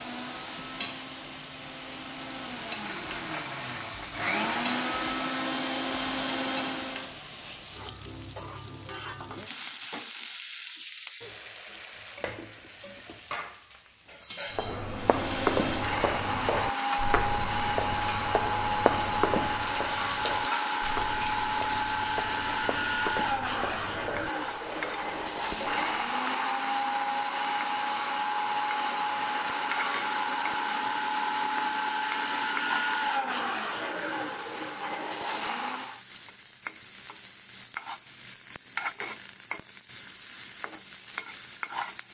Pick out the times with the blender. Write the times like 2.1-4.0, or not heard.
0.0-7.2, 14.8-36.0.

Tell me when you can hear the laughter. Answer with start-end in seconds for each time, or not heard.
not heard.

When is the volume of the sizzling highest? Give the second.
21 s.